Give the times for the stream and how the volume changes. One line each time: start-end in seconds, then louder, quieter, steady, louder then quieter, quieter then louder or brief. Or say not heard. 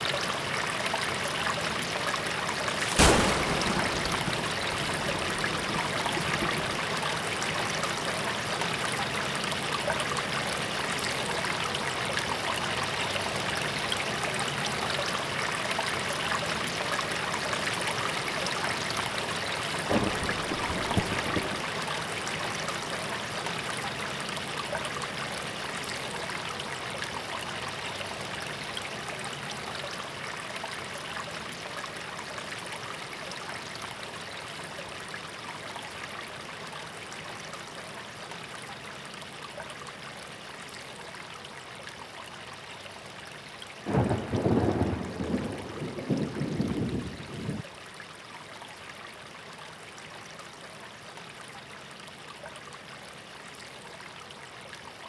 0.0-55.0 quieter.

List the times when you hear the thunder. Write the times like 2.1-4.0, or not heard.
2.8-6.8, 19.9-21.6, 43.9-47.6.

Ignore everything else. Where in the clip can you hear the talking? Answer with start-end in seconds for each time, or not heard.
not heard.